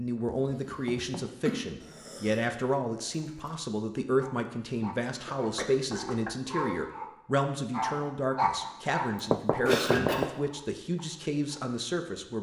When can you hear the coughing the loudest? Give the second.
10 s.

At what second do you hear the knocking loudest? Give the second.
10 s.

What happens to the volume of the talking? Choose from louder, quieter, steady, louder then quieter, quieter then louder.
steady.